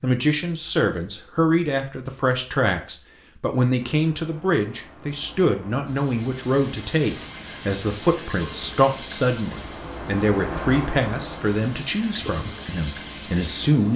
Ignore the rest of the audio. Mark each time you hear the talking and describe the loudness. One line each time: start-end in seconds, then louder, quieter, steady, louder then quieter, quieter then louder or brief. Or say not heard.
0.0-13.9 steady.